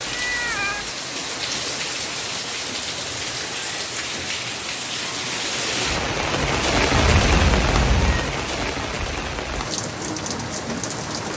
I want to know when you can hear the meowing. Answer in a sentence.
You can hear the meowing from 0.1 to 0.9 s and from 6.9 to 8.3 s.